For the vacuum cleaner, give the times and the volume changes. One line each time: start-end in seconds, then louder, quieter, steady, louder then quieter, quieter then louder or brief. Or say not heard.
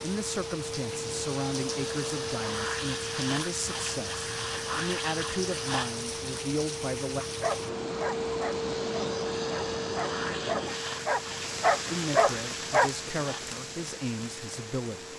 0.0-15.1 quieter.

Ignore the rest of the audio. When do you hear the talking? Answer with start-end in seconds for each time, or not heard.
0.0-7.2, 11.9-15.1.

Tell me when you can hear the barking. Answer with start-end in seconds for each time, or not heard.
7.4-12.9.